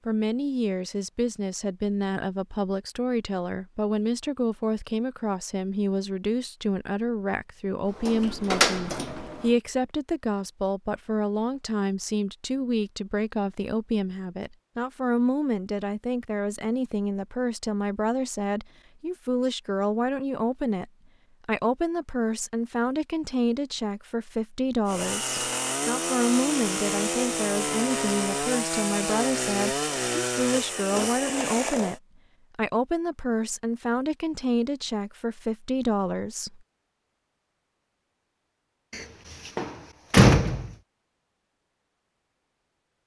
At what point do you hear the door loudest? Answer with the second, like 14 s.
40 s.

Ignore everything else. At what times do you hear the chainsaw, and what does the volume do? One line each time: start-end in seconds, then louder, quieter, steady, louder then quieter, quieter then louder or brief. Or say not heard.
24.9-32.0 steady.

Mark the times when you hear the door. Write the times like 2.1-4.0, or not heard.
8.0-9.5, 38.9-40.7.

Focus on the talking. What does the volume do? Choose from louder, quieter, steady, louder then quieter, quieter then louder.
steady.